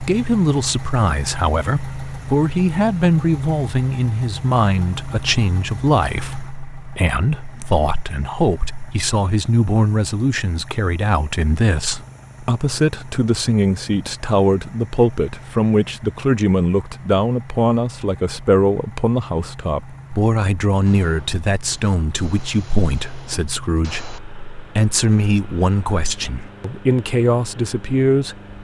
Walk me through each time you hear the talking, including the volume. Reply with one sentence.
You can hear the talking from 0.0 to 28.4 s, at a steady volume.